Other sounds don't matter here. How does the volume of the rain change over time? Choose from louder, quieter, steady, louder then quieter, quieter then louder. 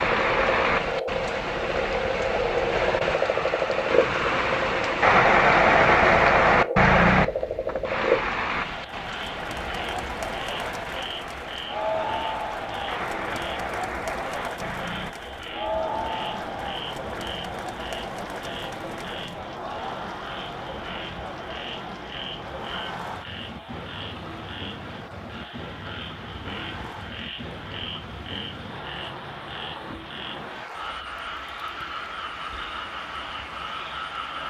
quieter.